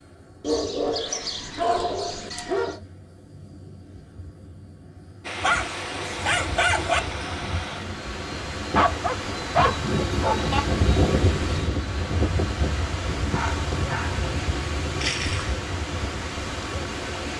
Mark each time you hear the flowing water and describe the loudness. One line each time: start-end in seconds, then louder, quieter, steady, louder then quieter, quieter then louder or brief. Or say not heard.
5.2-17.3 steady.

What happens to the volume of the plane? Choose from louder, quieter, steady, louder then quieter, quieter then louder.
louder then quieter.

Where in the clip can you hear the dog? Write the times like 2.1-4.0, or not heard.
0.4-2.8, 5.4-7.0, 8.8-10.6, 13.3-15.6.